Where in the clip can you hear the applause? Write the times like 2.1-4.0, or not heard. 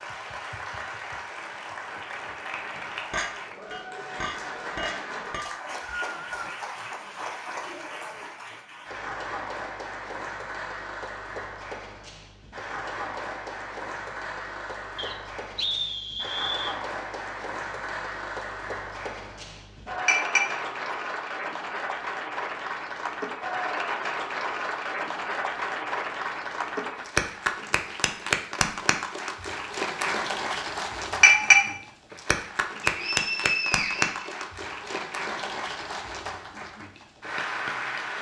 0.0-38.1.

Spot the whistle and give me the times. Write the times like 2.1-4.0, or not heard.
5.4-6.5, 14.9-16.8, 32.8-34.4.